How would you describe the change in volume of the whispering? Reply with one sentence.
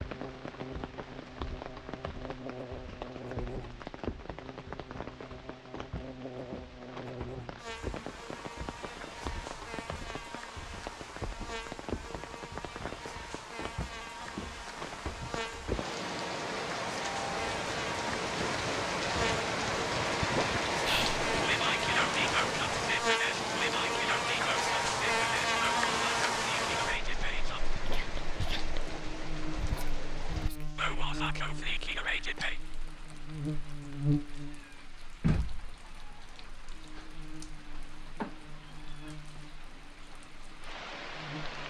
The volume of the whispering goes down, then up.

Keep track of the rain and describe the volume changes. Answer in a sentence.
The loudness of the rain goes up, then down.